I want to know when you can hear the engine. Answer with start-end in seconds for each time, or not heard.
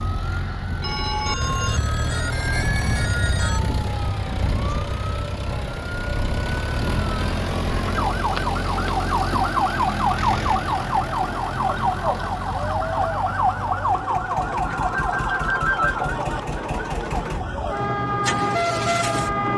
0.0-19.4.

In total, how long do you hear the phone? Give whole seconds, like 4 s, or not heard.
5 s.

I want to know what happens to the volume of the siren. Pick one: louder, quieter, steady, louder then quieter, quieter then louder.
louder.